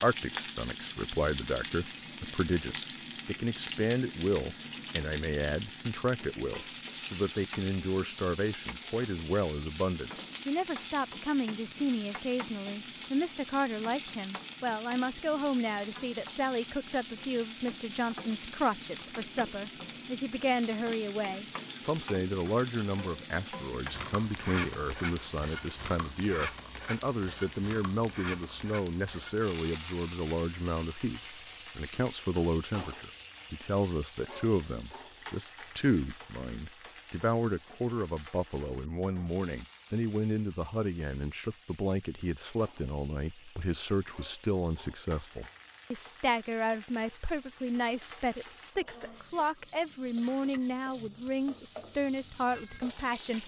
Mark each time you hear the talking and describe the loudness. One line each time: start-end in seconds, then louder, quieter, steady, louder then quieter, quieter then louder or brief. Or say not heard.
0.0-53.4 steady.